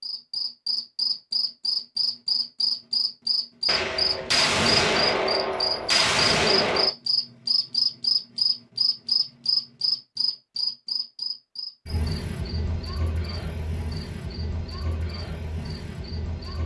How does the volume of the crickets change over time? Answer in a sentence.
The volume of the crickets goes down.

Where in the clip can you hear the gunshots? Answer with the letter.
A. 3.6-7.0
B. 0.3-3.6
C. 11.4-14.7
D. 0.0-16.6
A.